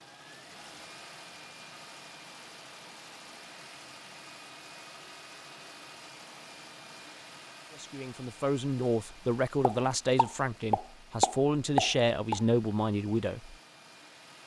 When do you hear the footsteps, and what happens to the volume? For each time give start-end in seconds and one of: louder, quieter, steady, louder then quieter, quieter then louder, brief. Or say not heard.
not heard.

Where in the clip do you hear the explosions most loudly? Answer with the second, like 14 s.
12 s.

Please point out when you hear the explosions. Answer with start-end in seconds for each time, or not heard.
9.6-12.4.